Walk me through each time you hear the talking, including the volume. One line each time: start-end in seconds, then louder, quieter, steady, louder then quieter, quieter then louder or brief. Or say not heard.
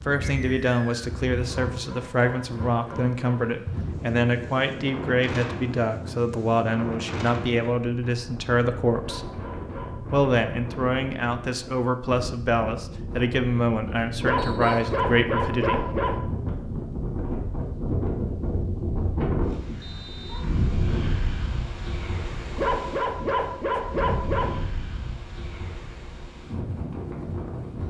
0.1-9.3 steady
10.1-15.8 steady.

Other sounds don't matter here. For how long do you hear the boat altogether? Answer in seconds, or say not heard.
not heard.